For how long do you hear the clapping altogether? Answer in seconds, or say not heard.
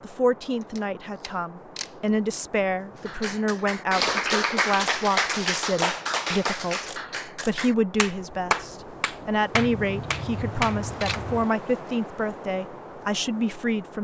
8 s.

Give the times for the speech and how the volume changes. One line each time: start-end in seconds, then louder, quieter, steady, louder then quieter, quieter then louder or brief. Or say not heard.
0.0-13.9 steady.